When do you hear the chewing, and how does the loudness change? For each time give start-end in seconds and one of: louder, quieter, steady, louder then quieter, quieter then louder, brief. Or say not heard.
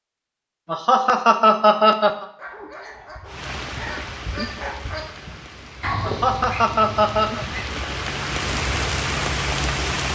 not heard.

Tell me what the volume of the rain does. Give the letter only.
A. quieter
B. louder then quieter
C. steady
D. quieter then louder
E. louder
D.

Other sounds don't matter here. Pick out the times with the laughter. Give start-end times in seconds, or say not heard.
0.7-2.2, 6.0-7.5.